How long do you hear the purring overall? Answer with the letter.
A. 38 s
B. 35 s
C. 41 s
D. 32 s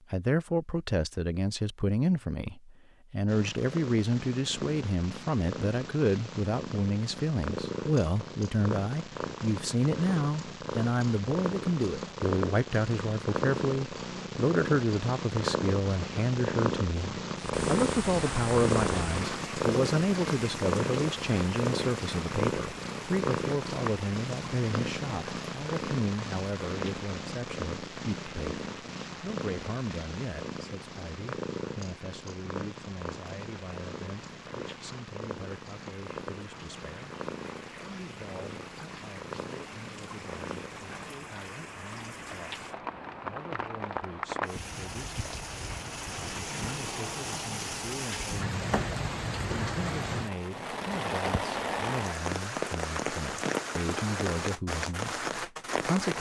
A.